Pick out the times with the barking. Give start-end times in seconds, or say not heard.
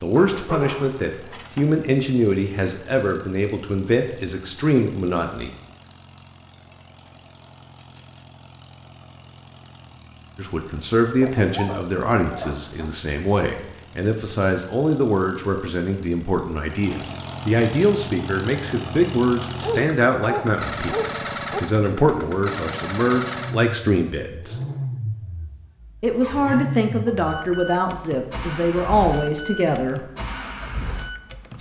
0.1-1.8, 11.2-12.9, 19.6-21.6, 26.1-26.9.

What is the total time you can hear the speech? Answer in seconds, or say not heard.
24 s.